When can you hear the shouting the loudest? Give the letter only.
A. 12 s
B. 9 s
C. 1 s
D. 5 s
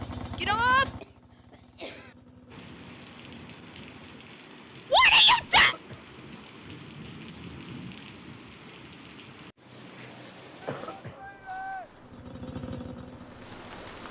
D.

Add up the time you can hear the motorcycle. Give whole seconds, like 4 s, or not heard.
6 s.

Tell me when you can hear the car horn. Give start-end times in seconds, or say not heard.
not heard.